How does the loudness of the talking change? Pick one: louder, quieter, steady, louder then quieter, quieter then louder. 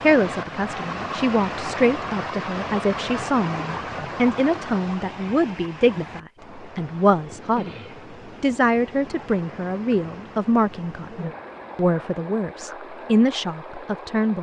steady.